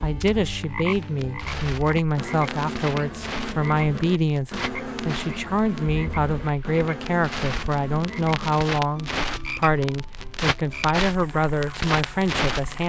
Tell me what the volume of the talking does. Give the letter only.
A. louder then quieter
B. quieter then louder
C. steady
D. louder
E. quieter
C.